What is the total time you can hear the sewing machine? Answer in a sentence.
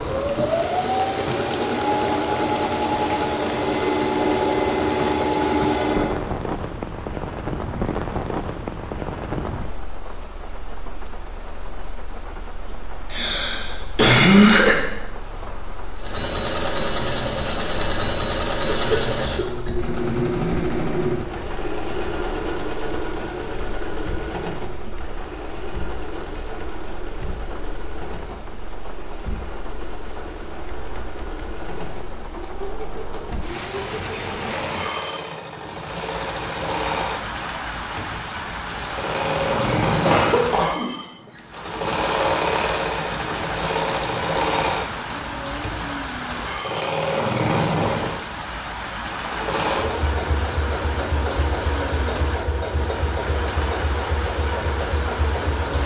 You can hear the sewing machine for 46 seconds altogether.